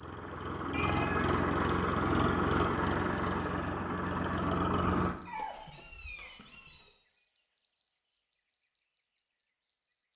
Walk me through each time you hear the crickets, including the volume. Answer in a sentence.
The crickets can be heard from 0.0 to 10.1 s, getting louder then quieter.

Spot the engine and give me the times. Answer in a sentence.
You can hear the engine from 0.0 to 5.2 s.